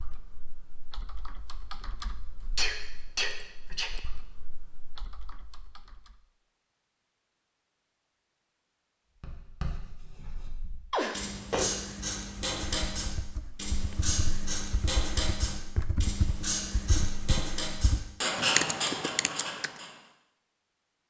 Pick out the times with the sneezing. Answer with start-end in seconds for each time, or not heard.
2.5-3.9, 10.9-11.7.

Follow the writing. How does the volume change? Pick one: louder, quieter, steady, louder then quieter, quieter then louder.
louder.